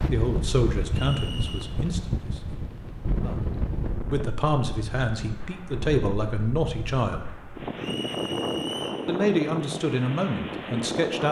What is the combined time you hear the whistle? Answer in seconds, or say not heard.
2 s.